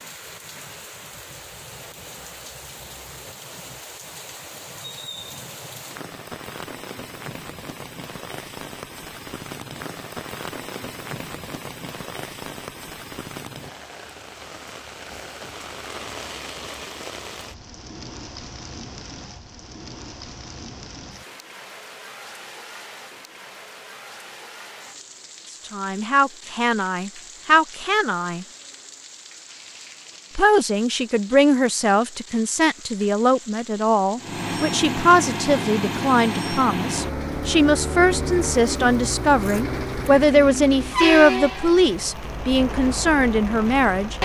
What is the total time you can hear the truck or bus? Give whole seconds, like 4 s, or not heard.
10 s.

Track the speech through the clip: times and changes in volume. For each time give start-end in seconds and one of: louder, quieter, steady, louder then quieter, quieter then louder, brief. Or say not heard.
25.7-28.4 brief
30.4-44.1 steady.